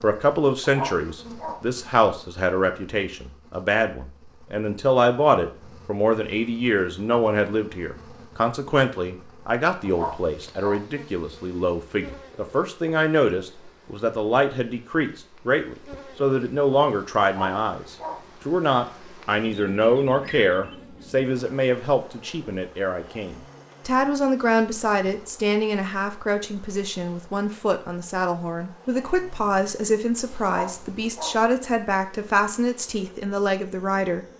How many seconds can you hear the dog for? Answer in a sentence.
The dog can be heard for 4 seconds in total.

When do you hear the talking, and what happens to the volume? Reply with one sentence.
The talking can be heard from 0.0 to 34.3 s, at a steady volume.